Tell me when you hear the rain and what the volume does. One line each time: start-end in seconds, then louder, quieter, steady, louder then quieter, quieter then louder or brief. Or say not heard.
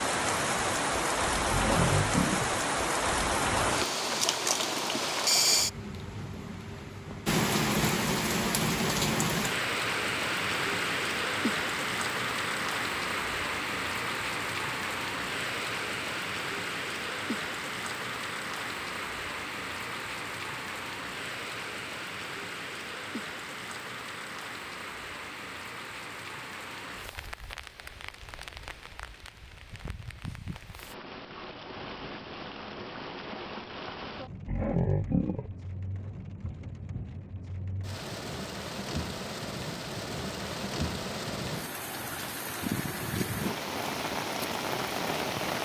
0.0-45.6 quieter then louder.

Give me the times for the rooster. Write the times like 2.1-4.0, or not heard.
not heard.